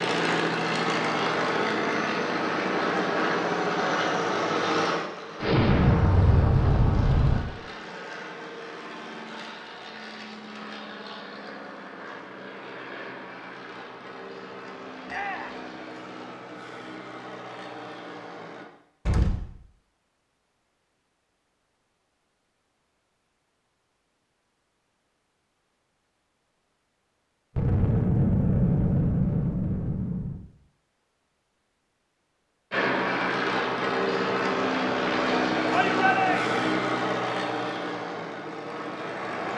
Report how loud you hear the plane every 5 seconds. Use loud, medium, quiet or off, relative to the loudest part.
loud, quiet, quiet, quiet, off, off, loud, loud.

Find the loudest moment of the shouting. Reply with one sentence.
The loudest moment of the shouting is at 36 seconds.